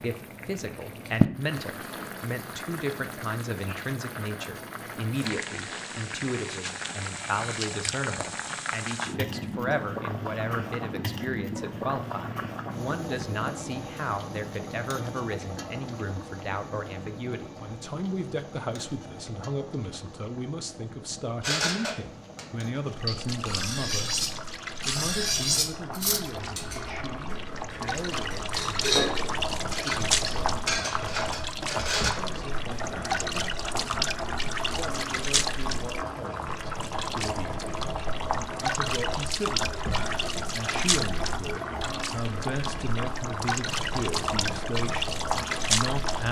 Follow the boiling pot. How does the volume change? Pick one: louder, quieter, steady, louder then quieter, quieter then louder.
quieter then louder.